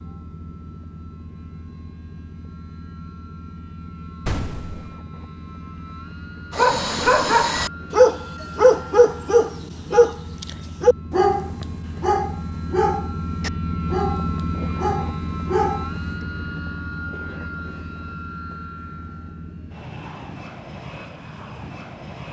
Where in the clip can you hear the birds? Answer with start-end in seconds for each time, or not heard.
not heard.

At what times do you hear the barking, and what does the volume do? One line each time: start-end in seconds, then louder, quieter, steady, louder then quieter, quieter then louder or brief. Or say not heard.
6.5-16.1 quieter.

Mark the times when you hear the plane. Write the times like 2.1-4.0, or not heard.
0.0-22.2.